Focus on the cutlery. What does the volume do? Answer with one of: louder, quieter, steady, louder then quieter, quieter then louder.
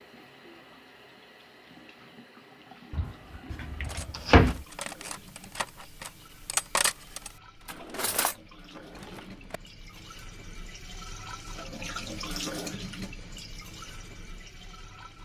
louder then quieter.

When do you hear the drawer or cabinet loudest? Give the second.
4 s.